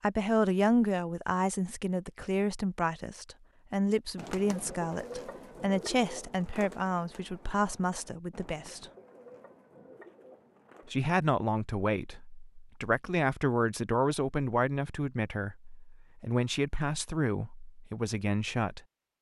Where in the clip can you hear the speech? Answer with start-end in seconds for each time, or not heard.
0.0-8.9, 10.8-18.8.